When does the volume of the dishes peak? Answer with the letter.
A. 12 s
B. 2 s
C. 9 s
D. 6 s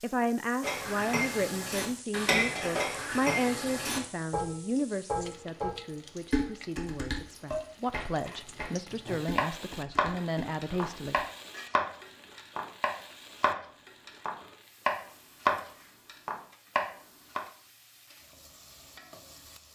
B.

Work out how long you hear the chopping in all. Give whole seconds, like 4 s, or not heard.
9 s.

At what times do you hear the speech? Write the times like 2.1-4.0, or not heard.
0.0-11.2.